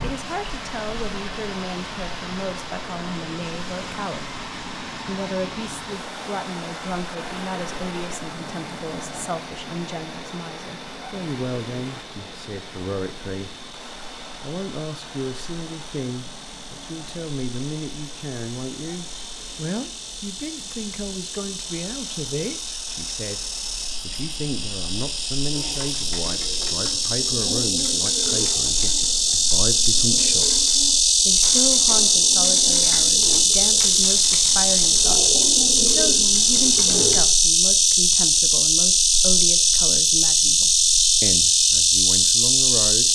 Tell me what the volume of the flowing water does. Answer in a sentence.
The volume of the flowing water goes down.